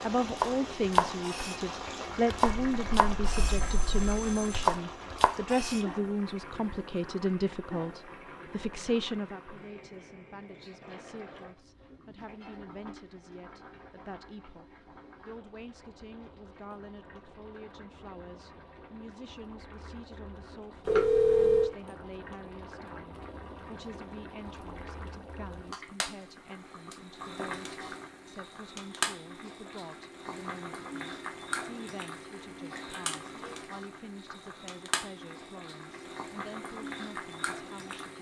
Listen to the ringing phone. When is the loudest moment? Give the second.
21 s.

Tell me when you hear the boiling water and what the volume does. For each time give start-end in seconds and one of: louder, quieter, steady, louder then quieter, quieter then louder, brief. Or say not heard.
0.0-38.1 quieter then louder.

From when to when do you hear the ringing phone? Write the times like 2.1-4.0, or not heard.
2.5-4.8, 20.9-21.7.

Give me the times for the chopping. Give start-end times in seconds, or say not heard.
0.2-1.7, 2.3-3.6, 4.5-5.8.